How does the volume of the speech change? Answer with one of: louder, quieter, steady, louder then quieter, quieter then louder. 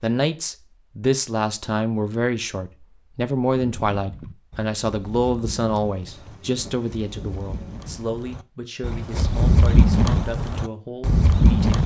quieter.